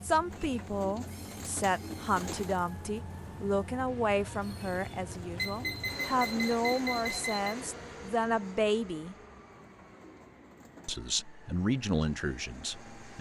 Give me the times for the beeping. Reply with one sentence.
You can hear the beeping from 5.3 to 7.5 s.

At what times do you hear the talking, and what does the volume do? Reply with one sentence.
You can hear the talking from 0.0 to 9.2 s, at a steady volume; and briefly from 10.8 to 13.1 s.